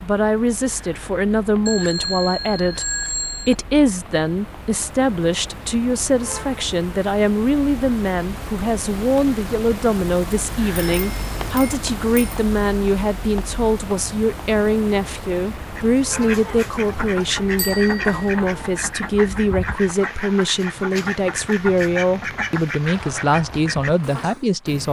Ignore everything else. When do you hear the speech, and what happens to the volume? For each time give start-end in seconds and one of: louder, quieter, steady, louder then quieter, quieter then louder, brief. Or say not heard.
0.0-24.8 steady.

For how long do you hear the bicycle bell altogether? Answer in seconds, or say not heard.
4 s.